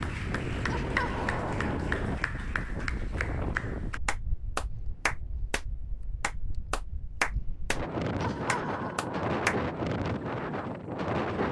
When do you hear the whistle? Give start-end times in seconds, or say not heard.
not heard.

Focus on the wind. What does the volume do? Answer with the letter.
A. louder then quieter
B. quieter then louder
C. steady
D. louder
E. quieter
B.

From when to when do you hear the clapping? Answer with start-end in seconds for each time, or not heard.
0.0-5.6, 6.2-7.8, 8.4-9.6.